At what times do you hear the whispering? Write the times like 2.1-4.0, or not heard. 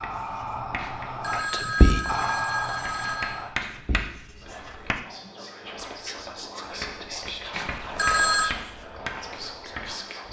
0.0-10.2.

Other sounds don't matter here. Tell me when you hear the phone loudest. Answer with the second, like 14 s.
8 s.